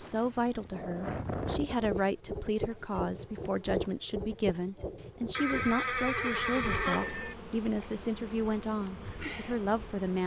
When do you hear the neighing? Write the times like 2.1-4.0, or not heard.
5.3-7.3.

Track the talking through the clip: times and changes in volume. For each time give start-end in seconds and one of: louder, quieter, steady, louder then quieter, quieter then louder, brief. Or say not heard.
0.0-10.2 steady.